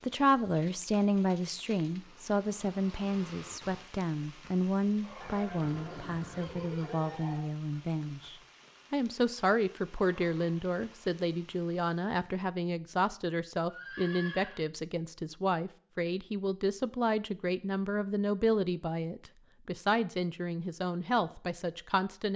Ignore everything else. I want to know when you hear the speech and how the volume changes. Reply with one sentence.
You can hear the speech from 0.0 to 22.3 s, at a steady volume.